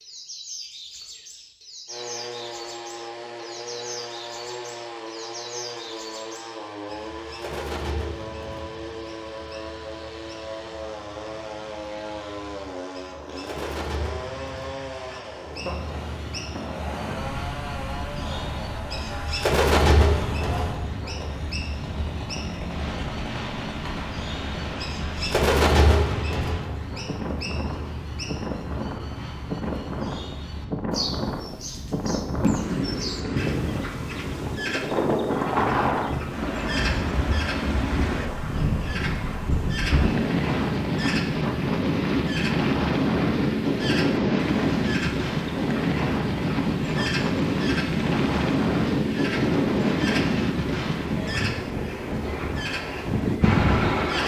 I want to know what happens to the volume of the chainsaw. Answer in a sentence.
The loudness of the chainsaw stays about the same.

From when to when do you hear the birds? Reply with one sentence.
The birds can be heard from 0.0 to 54.2 s.